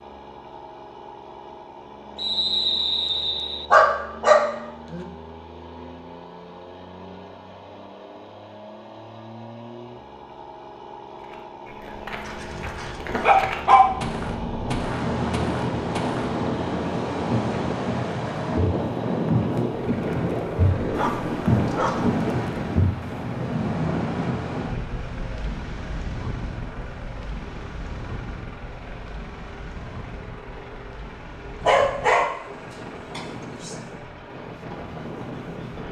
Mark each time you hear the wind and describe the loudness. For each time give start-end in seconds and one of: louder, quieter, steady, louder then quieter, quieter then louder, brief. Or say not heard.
13.8-35.8 quieter.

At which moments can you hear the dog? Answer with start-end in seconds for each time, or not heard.
3.7-5.0, 12.2-13.8, 20.8-22.2, 31.6-33.8.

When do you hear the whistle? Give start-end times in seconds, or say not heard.
2.1-3.6.